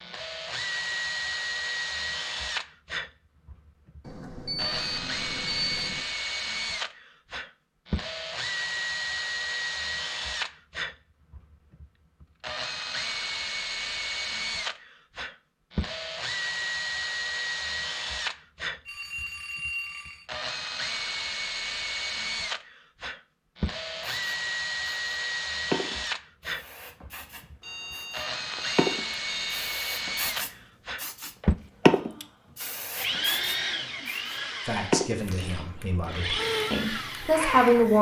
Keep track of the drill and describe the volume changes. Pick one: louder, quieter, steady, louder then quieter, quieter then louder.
steady.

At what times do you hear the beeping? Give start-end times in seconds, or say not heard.
4.0-6.0, 18.9-20.2, 27.6-29.7.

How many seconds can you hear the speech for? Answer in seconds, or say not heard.
3 s.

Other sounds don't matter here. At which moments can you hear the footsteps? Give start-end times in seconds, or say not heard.
not heard.